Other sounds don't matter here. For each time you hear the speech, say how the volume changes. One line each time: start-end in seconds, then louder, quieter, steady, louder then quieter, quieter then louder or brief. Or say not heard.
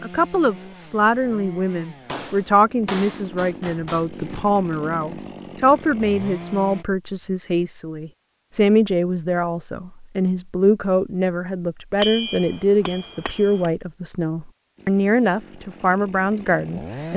0.0-17.1 steady.